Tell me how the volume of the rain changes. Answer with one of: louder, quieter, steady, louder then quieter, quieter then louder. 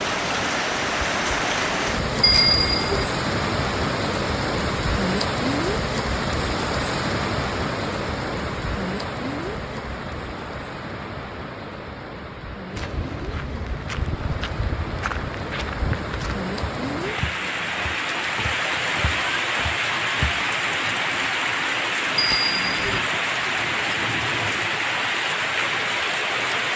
quieter then louder.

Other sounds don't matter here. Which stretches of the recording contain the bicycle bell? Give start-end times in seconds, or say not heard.
2.2-3.0, 22.1-23.0.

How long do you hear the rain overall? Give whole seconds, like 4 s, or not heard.
27 s.